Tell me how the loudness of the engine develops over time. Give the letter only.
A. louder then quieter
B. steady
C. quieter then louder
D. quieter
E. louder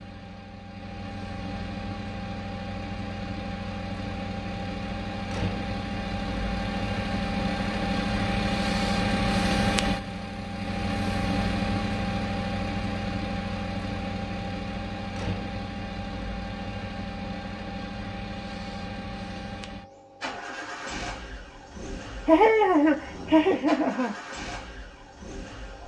A.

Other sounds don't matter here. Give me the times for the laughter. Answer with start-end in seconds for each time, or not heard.
22.2-24.1.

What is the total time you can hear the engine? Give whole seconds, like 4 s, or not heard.
26 s.